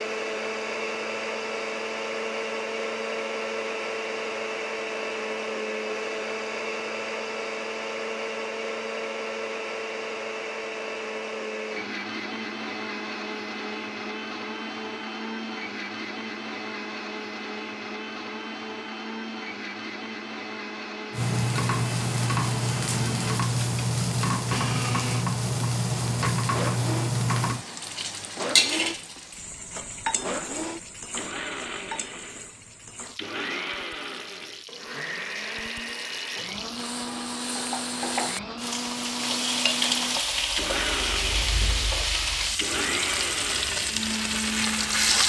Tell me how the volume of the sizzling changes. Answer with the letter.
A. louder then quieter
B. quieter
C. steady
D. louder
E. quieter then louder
E.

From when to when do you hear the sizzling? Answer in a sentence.
The sizzling can be heard from 21.1 to 45.2 s.